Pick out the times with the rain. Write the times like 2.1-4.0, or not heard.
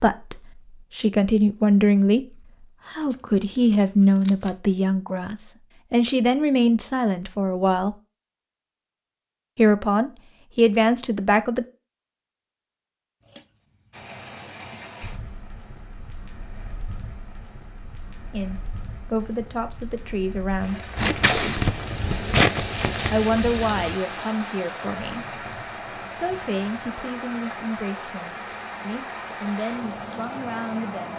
13.9-31.1.